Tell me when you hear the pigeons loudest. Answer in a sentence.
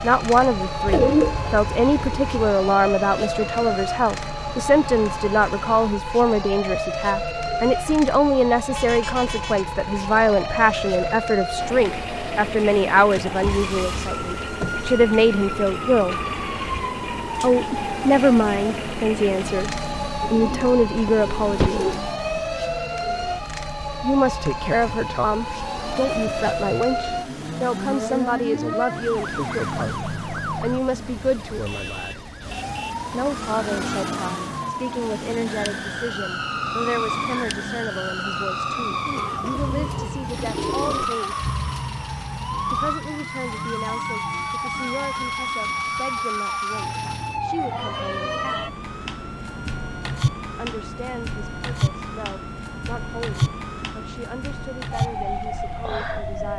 The loudest moment of the pigeons is at 1 second.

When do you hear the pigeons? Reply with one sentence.
You can hear the pigeons from 0.8 to 2.5 s, from 20.2 to 22.0 s and from 39.0 to 41.0 s.